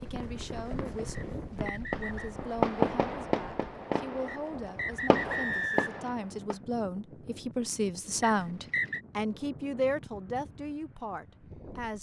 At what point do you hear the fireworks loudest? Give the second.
3 s.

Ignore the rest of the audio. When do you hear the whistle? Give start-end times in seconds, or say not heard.
1.1-2.3, 4.2-6.1, 8.2-9.0.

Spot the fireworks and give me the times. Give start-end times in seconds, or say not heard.
0.0-6.5.